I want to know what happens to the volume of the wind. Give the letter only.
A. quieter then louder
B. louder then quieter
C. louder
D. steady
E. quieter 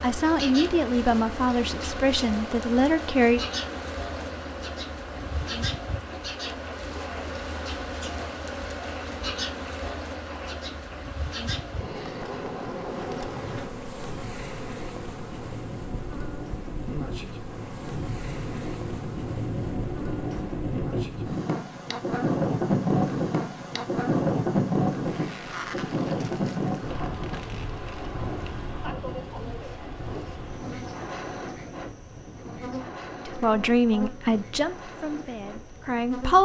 B.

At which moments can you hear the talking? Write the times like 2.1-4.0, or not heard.
0.0-3.4, 33.2-36.4.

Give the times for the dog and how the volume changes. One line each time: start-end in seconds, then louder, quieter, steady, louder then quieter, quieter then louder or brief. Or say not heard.
not heard.